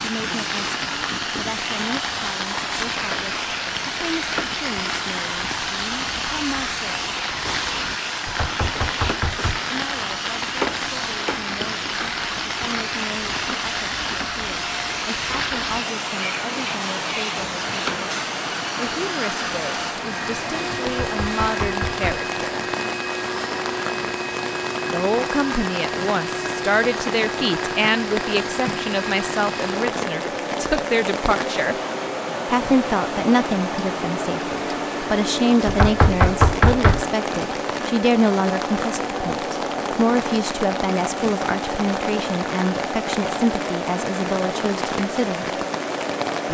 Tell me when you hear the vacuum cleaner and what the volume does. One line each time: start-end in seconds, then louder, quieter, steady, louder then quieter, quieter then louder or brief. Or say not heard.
0.0-46.4 steady.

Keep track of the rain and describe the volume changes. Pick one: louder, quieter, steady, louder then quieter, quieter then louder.
steady.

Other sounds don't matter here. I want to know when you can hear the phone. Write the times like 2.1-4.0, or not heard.
not heard.